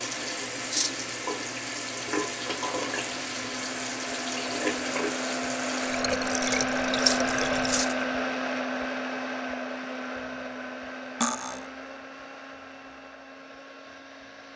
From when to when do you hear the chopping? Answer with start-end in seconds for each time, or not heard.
not heard.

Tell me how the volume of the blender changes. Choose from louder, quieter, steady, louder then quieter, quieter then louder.
louder then quieter.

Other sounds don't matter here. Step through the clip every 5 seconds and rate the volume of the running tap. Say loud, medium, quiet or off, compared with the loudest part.
loud, loud, off.